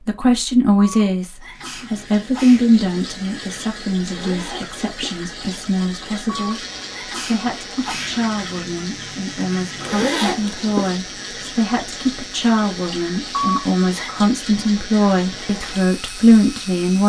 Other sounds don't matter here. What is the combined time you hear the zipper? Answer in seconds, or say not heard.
2 s.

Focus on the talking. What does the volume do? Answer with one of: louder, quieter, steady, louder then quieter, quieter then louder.
quieter then louder.